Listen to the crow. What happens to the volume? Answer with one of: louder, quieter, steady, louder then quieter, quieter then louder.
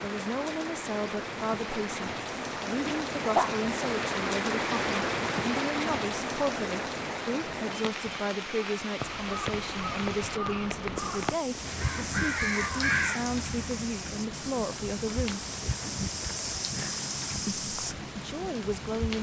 louder.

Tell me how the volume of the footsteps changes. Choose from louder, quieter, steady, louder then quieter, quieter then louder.
louder.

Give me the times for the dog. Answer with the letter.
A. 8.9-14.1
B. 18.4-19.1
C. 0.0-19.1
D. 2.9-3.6
D.